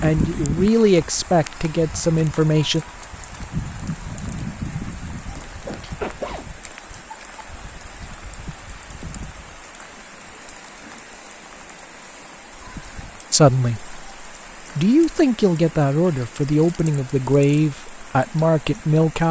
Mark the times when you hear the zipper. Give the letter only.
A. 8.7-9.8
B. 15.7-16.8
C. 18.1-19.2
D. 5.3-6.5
D.